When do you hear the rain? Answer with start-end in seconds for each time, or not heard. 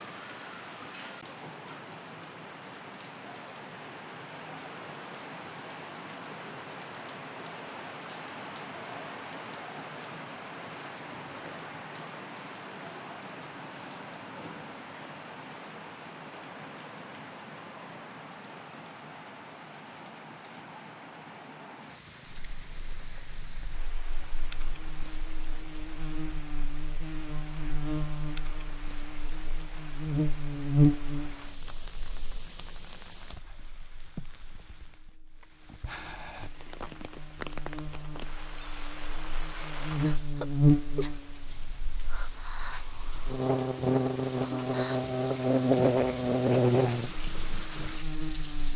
0.0-48.7.